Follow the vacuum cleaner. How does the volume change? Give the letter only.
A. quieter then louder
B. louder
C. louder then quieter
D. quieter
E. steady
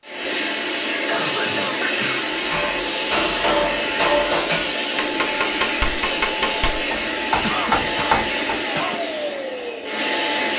E.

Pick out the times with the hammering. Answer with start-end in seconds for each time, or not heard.
2.2-8.6.